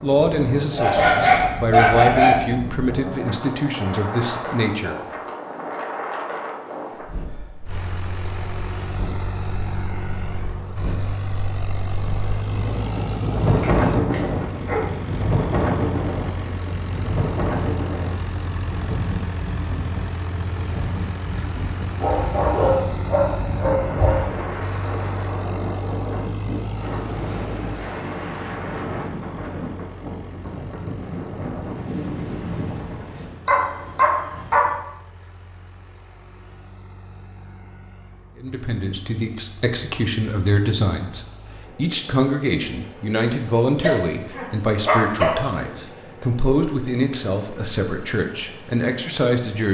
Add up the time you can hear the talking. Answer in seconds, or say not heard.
16 s.